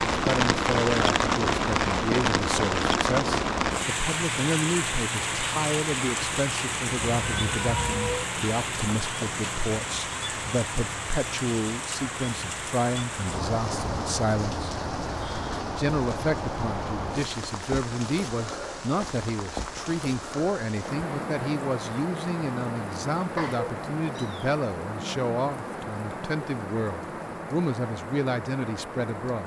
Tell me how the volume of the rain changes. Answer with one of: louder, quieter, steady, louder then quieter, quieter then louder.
quieter.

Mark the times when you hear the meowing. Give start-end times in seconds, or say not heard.
7.0-8.3, 23.4-24.6.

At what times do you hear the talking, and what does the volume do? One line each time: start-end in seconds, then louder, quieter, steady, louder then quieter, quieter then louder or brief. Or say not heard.
0.1-14.8 steady
15.8-29.4 steady.